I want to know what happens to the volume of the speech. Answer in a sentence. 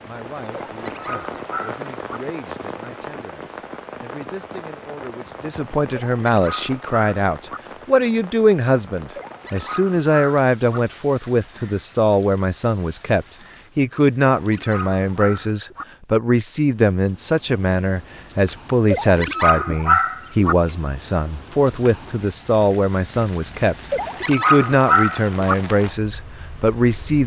The loudness of the speech goes up.